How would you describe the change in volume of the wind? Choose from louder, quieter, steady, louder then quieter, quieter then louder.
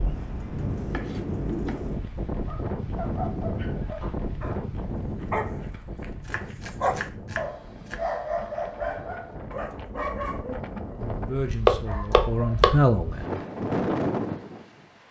quieter then louder.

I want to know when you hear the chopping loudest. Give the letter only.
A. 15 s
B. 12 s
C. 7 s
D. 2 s
B.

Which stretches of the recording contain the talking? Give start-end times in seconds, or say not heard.
11.2-13.4.